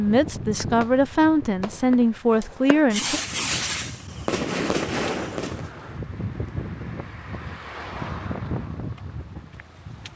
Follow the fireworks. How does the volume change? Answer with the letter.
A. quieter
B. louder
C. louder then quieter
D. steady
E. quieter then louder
B.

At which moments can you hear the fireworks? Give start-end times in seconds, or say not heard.
0.0-5.7.